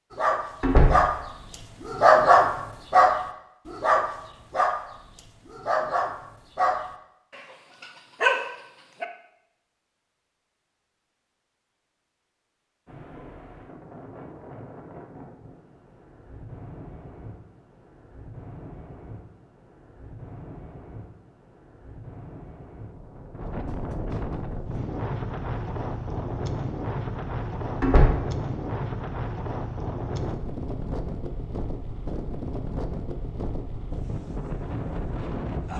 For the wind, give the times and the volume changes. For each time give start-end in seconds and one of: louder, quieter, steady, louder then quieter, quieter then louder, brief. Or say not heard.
12.8-35.7 louder.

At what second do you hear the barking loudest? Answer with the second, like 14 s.
2 s.